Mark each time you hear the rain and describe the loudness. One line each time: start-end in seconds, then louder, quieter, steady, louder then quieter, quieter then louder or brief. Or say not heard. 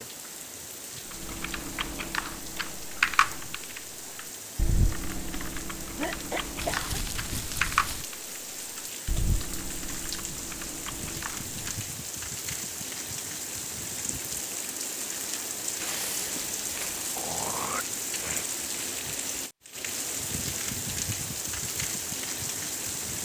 0.0-23.2 louder.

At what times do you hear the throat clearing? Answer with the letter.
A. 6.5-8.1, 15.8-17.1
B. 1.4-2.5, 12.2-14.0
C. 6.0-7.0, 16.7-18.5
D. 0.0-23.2
C.